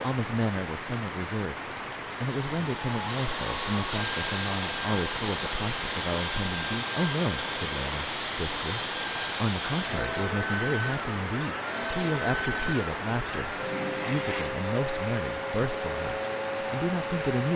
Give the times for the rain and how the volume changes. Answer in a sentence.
The rain can be heard from 0.0 to 17.5 s, at a steady volume.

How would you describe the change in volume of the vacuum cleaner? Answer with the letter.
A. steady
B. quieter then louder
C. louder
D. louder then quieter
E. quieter
A.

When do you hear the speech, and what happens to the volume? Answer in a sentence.
You can hear the speech from 0.0 to 17.5 s, at a steady volume.